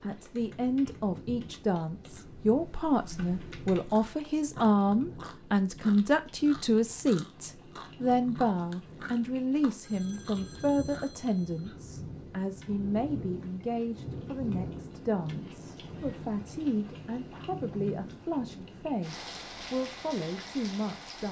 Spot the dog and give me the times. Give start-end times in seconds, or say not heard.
not heard.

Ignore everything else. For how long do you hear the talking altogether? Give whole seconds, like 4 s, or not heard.
21 s.